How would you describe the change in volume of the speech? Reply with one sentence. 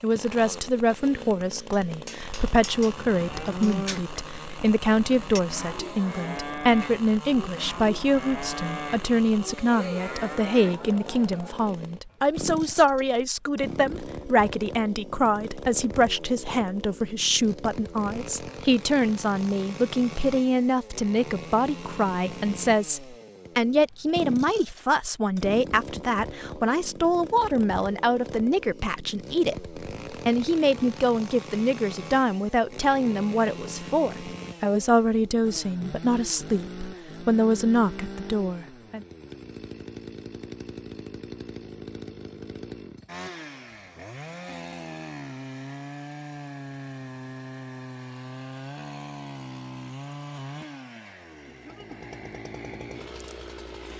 The volume of the speech stays about the same.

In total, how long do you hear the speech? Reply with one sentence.
The speech can be heard for 39 seconds in total.